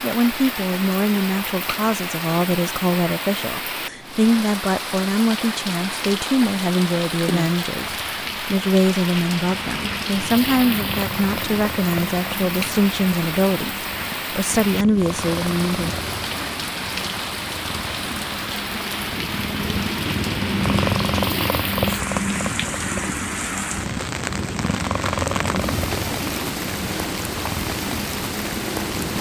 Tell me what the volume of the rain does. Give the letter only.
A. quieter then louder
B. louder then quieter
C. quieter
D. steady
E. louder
D.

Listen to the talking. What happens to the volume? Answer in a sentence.
The loudness of the talking stays about the same.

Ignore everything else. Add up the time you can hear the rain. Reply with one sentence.
The rain can be heard for 29 seconds in total.